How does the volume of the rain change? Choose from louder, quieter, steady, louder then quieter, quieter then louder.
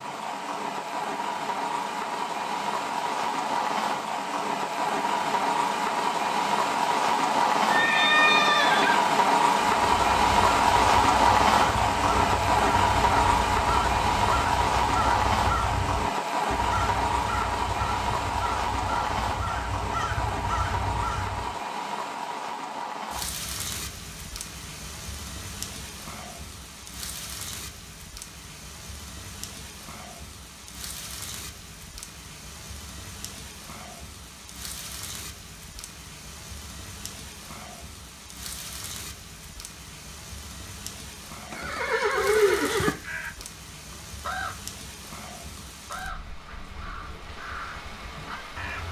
quieter.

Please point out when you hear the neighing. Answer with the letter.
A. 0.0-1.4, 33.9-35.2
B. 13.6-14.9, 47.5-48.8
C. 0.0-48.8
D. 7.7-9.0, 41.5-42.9
D.